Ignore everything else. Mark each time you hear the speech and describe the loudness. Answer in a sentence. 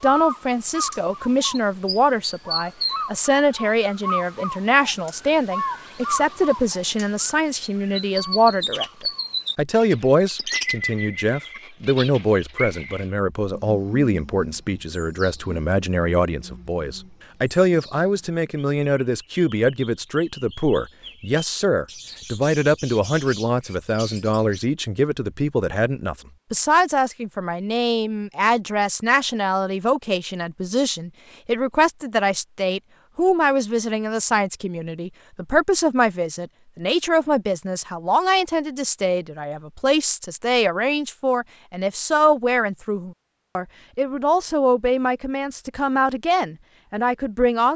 You can hear the speech from 0.0 to 47.7 s, at a steady volume.